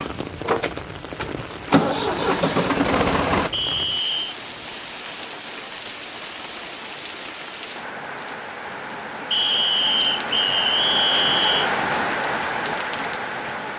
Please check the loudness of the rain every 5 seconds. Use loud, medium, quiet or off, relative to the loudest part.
medium, medium, loud.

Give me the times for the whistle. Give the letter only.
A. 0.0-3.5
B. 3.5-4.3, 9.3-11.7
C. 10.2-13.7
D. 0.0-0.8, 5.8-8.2
B.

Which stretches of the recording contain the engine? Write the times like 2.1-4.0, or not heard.
0.0-3.5.